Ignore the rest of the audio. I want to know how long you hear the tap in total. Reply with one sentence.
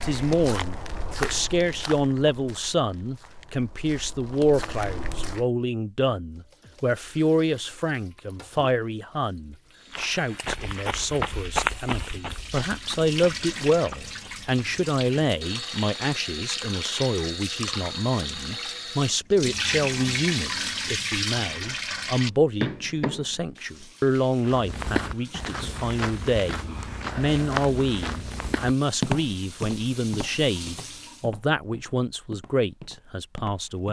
You can hear the tap for 25 seconds altogether.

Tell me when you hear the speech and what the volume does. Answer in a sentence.
You can hear the speech from 0.0 to 33.8 s, at a steady volume.